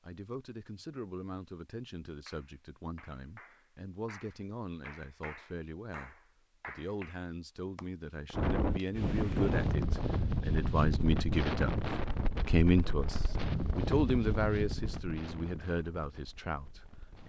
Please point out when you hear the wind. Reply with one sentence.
The wind can be heard from 8.3 to 17.2 s.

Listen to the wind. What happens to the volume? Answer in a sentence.
The volume of the wind goes down.